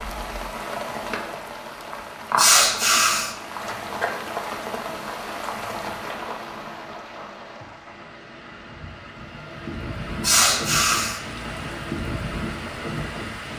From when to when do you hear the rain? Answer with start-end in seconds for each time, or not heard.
0.0-13.5.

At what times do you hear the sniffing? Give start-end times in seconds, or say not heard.
2.4-3.4, 10.2-11.2.